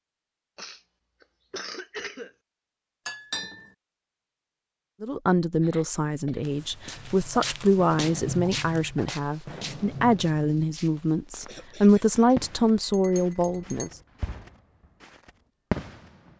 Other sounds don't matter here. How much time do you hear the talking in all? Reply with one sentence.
The talking can be heard for 9 seconds in total.